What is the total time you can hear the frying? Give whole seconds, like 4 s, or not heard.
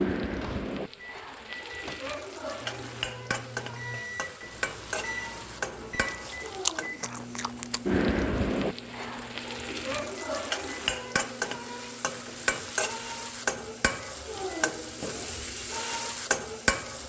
17 s.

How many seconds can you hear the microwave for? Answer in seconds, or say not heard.
17 s.